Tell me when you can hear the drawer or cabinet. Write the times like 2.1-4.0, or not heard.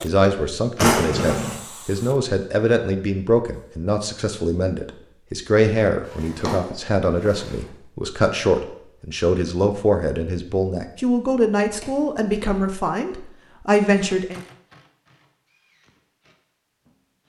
0.8-1.6, 6.0-7.7, 11.8-12.7.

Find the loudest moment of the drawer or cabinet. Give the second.
1 s.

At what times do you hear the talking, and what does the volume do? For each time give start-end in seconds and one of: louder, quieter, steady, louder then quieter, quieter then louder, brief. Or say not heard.
0.0-14.4 steady.